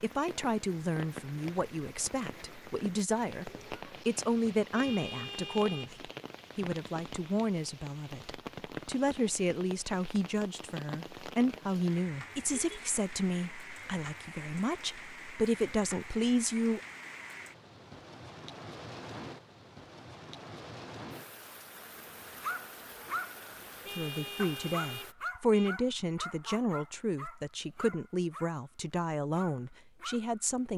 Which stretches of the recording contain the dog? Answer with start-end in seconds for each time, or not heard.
22.0-30.4.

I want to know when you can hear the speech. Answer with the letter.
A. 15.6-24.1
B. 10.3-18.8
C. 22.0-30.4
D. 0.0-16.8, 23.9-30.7
D.